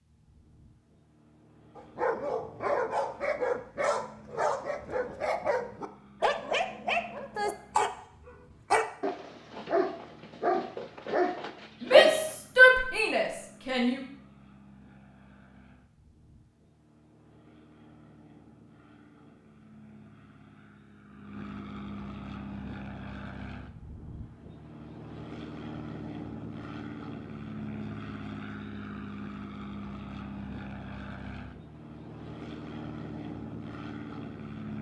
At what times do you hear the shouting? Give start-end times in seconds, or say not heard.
11.8-14.0.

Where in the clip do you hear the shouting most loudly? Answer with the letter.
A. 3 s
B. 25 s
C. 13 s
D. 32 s
C.